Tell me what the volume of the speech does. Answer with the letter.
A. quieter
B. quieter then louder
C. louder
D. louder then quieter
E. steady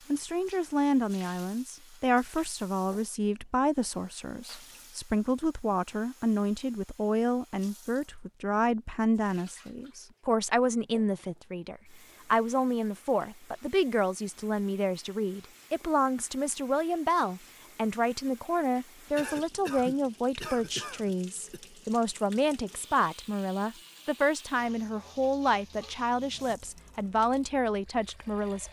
E.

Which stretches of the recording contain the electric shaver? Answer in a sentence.
The electric shaver can't be heard in this clip.